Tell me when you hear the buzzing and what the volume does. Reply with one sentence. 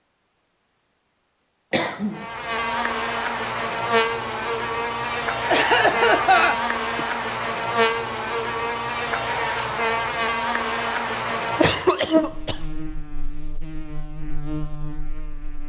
The buzzing can be heard from 2.1 to 15.6 s, getting quieter.